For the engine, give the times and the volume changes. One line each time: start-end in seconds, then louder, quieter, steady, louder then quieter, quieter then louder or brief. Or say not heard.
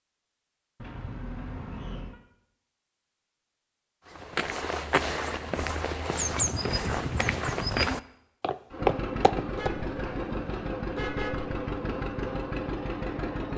8.7-13.5 steady.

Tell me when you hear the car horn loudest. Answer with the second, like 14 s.
11 s.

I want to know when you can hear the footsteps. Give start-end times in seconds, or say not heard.
4.1-9.7.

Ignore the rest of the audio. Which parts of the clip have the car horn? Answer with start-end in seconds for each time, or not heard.
0.8-2.2, 9.5-11.6.